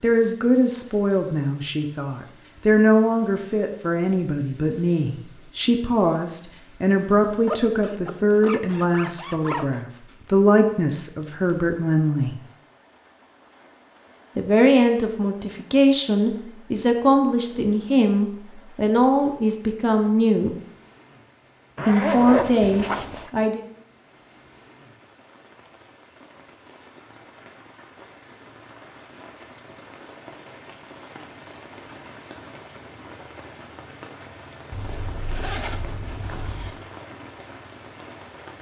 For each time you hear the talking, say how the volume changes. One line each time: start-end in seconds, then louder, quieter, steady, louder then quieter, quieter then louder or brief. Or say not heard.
0.0-12.3 steady
14.3-20.6 steady
21.9-23.6 brief.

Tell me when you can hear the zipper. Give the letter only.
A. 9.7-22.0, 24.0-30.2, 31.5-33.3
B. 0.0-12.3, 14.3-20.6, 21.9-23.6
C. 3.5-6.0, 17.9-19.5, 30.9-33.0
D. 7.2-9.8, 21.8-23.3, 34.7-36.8
D.